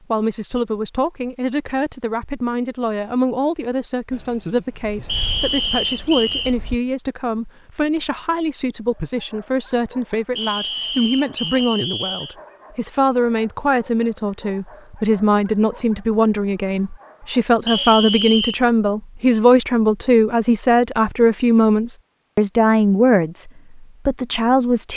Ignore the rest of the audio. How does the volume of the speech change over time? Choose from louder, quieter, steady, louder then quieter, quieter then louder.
louder.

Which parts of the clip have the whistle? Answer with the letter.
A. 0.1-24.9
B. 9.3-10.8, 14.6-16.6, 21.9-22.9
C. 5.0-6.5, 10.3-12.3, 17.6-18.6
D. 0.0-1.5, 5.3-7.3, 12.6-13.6
C.